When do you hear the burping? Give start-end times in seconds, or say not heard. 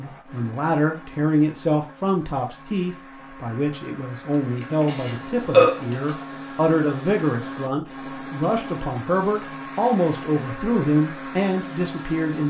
4.6-6.0.